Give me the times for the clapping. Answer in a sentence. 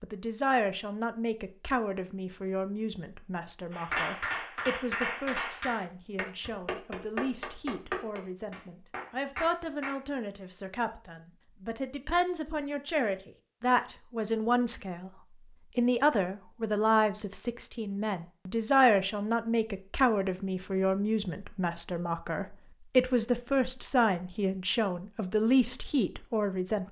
You can hear the clapping from 3.7 to 10.0 s.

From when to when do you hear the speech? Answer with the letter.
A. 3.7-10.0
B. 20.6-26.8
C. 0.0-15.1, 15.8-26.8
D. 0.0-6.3
C.